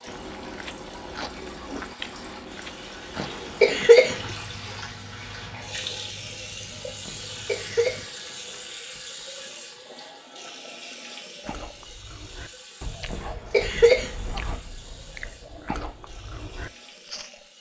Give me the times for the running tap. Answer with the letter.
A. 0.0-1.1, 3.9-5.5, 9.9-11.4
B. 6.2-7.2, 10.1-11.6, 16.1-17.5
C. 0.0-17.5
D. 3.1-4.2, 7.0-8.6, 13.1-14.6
C.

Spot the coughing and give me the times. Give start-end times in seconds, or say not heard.
3.1-4.2, 7.0-8.6, 13.1-14.6.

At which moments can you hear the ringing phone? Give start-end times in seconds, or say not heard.
not heard.